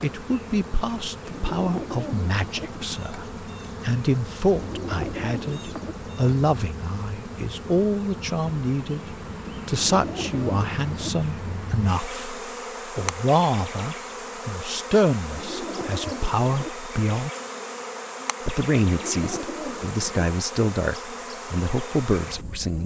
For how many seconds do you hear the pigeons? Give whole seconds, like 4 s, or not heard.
7 s.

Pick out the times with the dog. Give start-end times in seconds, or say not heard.
not heard.